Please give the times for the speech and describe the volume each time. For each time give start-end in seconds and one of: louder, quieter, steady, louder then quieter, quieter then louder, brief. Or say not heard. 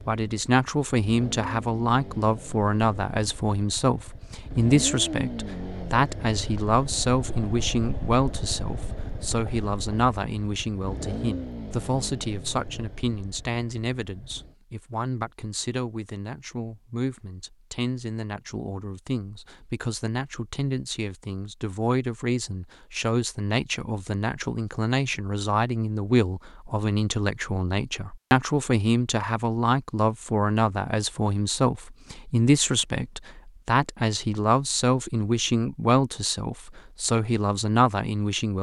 0.1-38.5 quieter then louder.